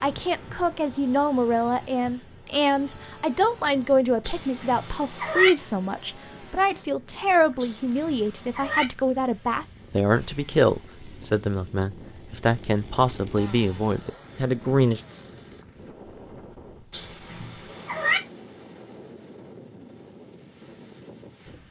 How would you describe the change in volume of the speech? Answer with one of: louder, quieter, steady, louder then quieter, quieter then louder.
steady.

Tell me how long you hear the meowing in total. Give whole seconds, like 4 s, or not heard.
4 s.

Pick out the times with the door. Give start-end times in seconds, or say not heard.
not heard.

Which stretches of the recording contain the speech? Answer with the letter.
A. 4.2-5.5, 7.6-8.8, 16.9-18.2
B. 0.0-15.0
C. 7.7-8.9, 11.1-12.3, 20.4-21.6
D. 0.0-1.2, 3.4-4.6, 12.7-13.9
B.